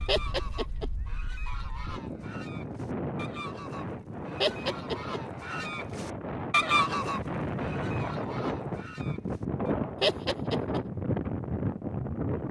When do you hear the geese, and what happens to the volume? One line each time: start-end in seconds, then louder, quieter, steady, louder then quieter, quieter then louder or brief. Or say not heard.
0.0-9.8 louder then quieter.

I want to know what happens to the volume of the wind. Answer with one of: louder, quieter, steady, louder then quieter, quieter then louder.
louder.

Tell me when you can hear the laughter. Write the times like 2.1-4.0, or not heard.
0.1-0.9, 4.4-5.2, 10.0-10.8.